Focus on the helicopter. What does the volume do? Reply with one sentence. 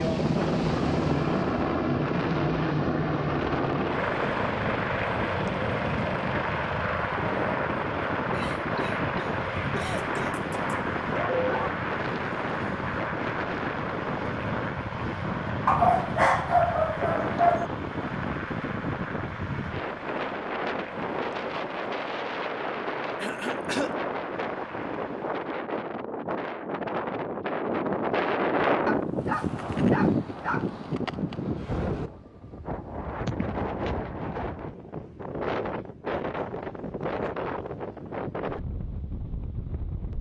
The volume of the helicopter goes down.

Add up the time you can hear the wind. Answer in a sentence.
The wind can be heard for 40 seconds in total.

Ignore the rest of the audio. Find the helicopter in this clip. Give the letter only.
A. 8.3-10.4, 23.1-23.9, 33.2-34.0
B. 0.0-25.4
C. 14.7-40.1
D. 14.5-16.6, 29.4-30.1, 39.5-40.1
B.